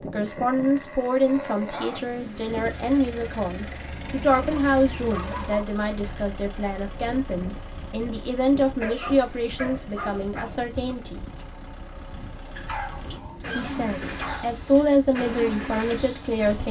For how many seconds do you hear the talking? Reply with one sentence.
You can hear the talking for 15 seconds altogether.